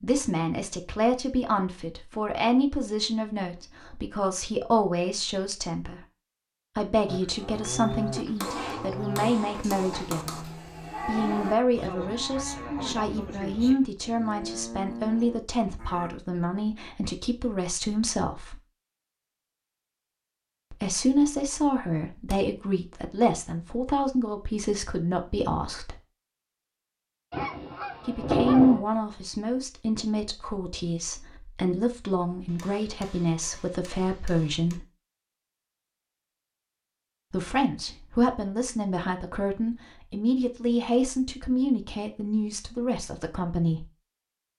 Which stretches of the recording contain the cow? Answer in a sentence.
You can hear the cow from 7.0 to 16.1 s.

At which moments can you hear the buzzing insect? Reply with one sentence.
The buzzing insect can't be heard in this clip.